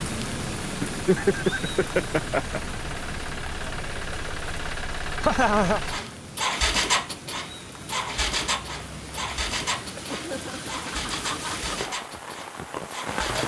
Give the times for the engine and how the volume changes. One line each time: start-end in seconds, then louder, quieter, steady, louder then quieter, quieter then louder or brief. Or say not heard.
0.0-13.4 louder then quieter.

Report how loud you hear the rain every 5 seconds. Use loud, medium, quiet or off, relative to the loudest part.
loud, medium, loud.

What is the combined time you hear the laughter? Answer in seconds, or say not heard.
4 s.